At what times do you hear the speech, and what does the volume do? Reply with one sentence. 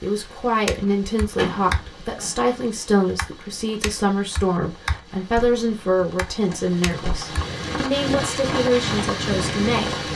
The speech can be heard from 0.0 to 9.9 s, at a steady volume.